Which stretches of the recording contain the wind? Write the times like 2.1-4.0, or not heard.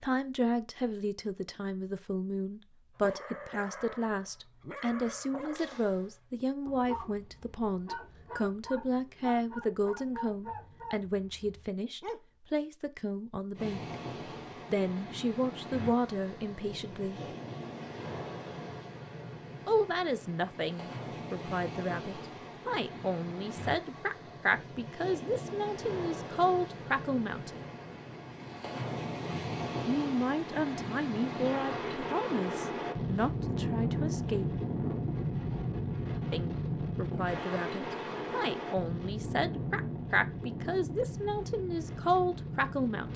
13.6-43.1.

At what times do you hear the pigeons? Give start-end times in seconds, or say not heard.
not heard.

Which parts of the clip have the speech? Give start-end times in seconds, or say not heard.
0.0-13.9, 14.7-17.2, 19.6-27.6, 29.9-34.5, 36.3-43.1.